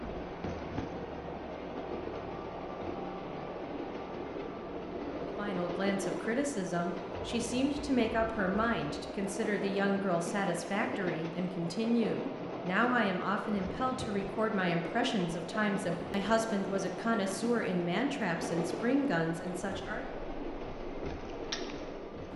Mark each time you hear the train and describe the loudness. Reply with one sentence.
The train can be heard from 0.0 to 22.3 s, at a steady volume.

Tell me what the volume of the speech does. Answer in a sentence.
The volume of the speech stays about the same.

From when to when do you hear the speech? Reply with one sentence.
The speech can be heard from 5.3 to 20.1 s.